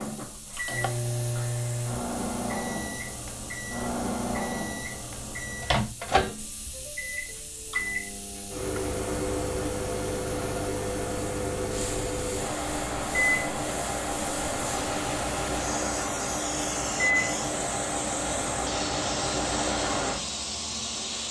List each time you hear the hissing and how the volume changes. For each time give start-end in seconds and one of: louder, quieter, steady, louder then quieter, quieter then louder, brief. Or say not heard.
0.0-21.2 louder.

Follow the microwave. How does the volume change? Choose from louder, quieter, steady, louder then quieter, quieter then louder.
steady.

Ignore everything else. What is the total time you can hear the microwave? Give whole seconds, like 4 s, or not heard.
21 s.